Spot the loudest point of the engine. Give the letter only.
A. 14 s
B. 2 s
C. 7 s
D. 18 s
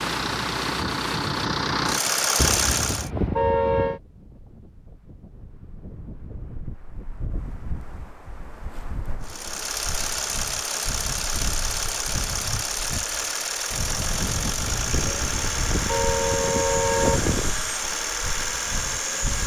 B.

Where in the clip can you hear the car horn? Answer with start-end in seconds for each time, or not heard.
2.4-4.0, 14.9-17.6.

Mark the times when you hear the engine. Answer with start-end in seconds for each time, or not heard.
0.0-3.1, 9.2-19.4.